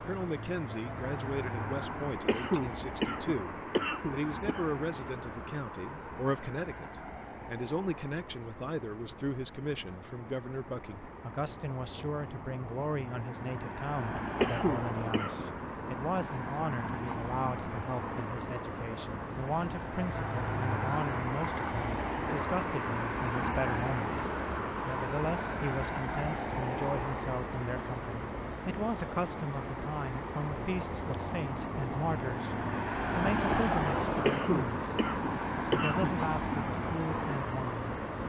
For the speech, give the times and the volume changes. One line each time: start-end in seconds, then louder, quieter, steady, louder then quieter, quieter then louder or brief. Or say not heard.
0.0-24.2 steady
24.9-38.0 steady.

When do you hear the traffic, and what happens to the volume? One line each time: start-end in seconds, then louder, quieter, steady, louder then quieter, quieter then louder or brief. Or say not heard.
0.0-38.2 louder.